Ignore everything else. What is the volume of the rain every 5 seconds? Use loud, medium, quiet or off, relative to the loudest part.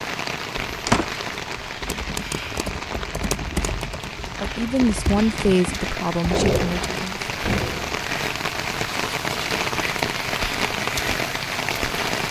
medium, loud, loud.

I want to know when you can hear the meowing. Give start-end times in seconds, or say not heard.
not heard.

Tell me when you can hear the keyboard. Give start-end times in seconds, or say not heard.
1.3-7.1.